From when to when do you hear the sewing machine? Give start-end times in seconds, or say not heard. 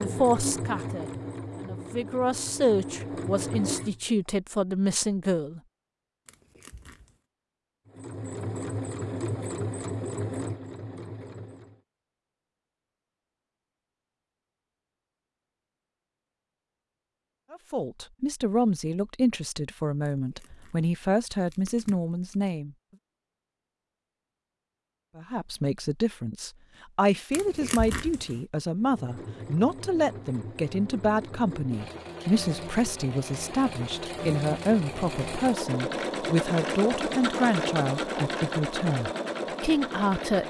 0.0-4.2, 7.8-11.8, 28.7-40.4.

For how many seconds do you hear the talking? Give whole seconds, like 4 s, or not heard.
26 s.